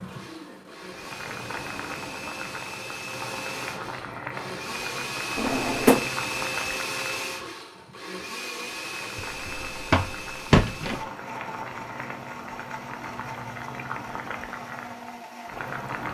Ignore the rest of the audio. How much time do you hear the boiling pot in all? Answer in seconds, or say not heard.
16 s.